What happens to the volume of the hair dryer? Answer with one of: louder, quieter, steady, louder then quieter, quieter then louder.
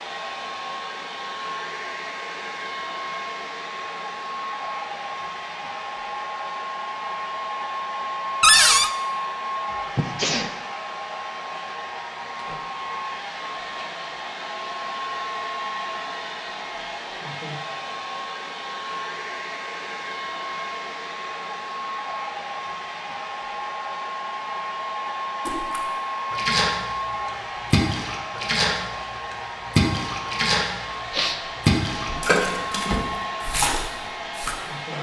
steady.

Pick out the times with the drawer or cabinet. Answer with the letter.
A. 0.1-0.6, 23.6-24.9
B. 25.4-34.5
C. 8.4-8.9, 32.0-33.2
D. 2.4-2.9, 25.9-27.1
C.